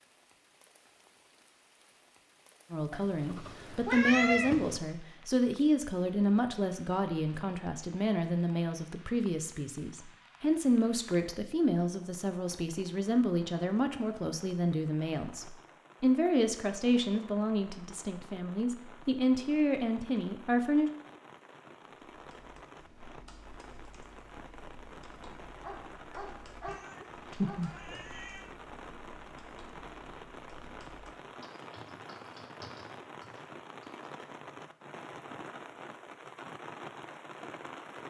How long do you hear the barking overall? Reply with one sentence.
You can hear the barking for 2 seconds altogether.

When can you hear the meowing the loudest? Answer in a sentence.
The loudest moment of the meowing is at 4 seconds.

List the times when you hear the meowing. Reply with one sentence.
You can hear the meowing from 2.9 to 4.8 s and from 26.6 to 28.5 s.